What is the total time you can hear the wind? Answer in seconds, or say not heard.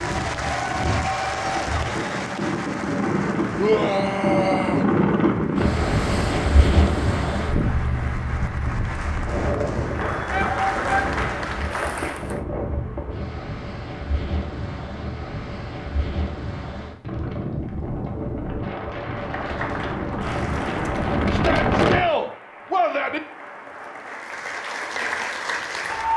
22 s.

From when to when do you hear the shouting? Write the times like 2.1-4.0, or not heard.
3.5-4.8, 10.3-11.1, 21.3-23.2.